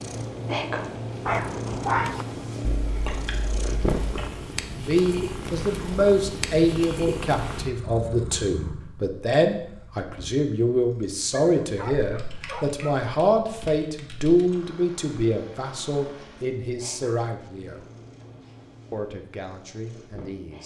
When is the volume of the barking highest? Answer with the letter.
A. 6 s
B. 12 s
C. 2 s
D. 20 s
C.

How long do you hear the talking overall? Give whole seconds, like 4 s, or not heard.
15 s.